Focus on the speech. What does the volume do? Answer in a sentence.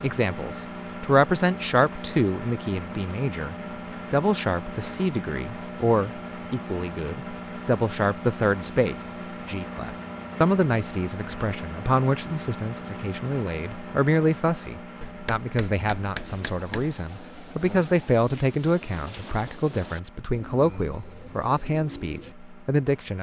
The volume of the speech stays about the same.